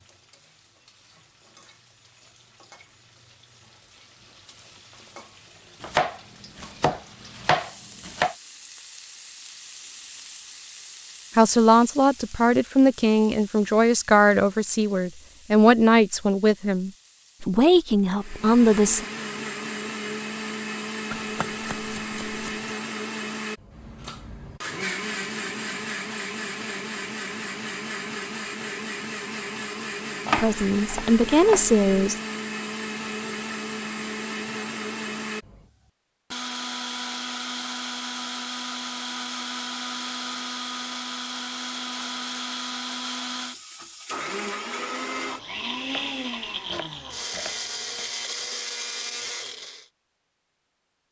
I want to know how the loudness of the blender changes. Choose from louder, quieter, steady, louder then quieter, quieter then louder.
steady.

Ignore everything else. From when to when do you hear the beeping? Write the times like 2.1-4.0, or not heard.
not heard.